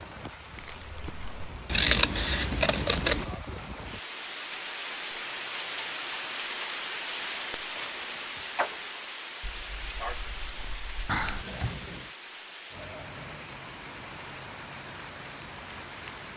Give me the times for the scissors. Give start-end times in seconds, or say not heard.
1.6-3.2, 9.4-11.4.